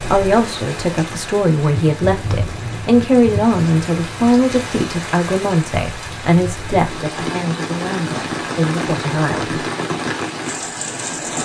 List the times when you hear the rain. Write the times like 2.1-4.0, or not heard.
0.0-11.4.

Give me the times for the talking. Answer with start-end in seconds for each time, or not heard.
0.0-9.7.